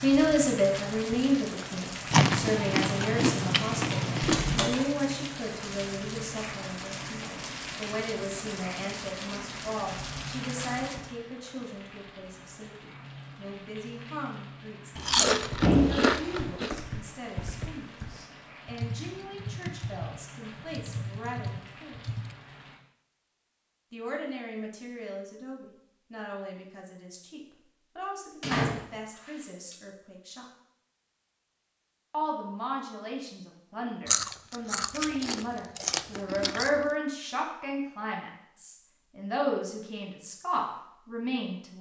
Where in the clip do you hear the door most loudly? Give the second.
16 s.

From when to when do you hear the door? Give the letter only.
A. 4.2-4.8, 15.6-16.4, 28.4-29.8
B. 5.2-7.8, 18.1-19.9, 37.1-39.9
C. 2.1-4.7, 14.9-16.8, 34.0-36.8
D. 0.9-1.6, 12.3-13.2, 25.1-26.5
A.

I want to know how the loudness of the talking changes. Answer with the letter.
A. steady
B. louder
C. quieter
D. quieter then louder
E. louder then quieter
D.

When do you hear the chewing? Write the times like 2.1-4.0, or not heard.
2.1-4.7, 14.9-16.8, 34.0-36.8.